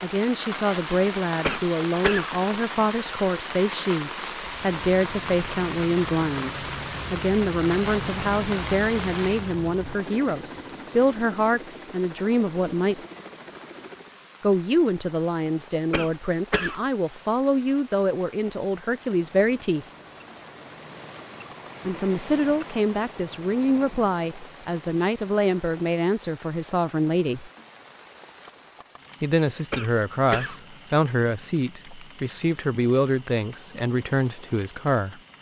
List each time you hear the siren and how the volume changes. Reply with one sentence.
The siren can't be heard in this clip.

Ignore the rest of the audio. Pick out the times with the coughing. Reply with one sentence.
The coughing can be heard from 1.4 to 2.3 s, from 15.9 to 16.8 s and from 29.7 to 30.6 s.